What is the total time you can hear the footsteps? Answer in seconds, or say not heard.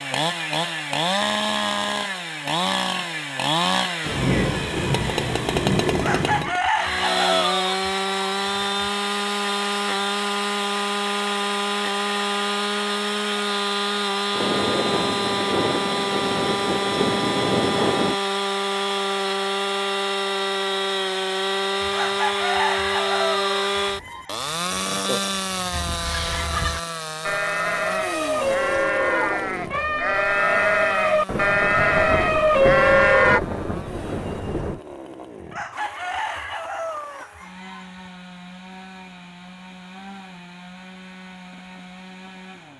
not heard.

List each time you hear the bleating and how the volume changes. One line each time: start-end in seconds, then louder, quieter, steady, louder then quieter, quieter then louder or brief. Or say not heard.
25.7-33.4 louder.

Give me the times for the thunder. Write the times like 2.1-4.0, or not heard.
4.0-6.5, 14.3-18.1, 31.2-34.8.